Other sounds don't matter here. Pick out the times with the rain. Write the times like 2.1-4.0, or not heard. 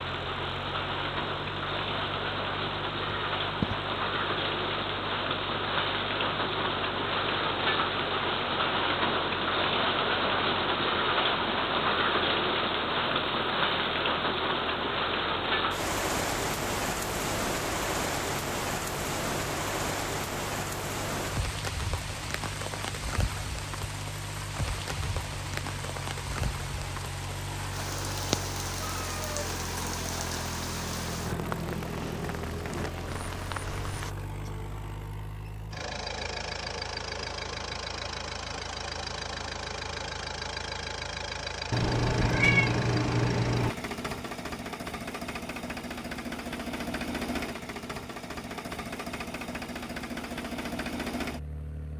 0.0-34.1.